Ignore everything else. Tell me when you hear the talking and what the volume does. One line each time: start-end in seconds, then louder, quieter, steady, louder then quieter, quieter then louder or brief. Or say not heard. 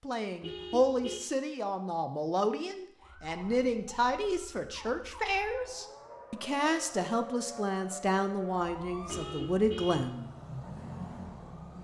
0.0-10.3 steady.